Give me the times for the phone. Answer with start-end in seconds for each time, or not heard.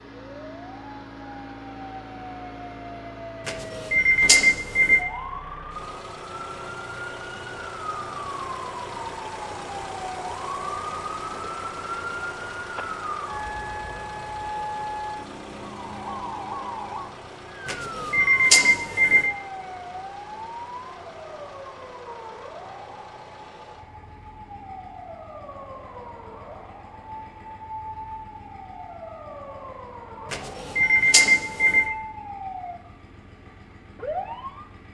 3.5-5.0, 17.6-19.3, 30.3-31.9.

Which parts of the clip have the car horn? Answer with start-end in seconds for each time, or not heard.
not heard.